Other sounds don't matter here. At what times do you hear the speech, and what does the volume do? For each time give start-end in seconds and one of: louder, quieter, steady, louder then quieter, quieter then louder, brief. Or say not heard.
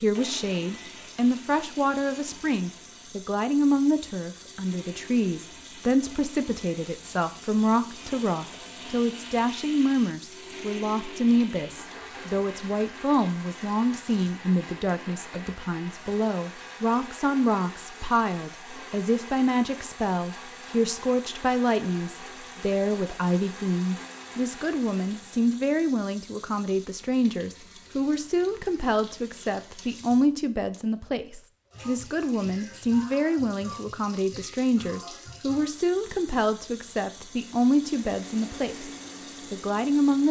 0.0-38.9 steady
39.5-40.2 brief.